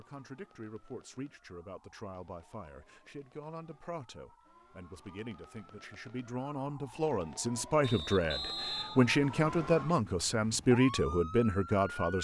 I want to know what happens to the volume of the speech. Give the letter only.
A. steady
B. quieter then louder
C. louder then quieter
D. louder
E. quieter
D.